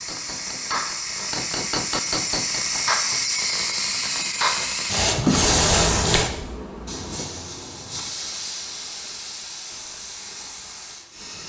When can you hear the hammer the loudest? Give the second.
2 s.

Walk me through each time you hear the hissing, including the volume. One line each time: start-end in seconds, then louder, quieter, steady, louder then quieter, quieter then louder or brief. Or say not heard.
0.0-11.4 louder then quieter.